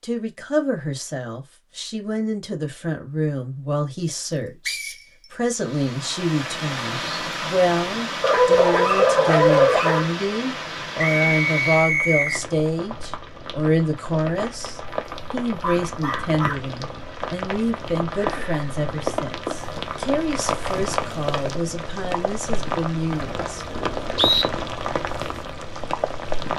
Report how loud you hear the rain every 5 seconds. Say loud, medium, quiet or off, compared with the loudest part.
off, loud, medium, loud, loud, loud.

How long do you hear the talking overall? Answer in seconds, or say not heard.
24 s.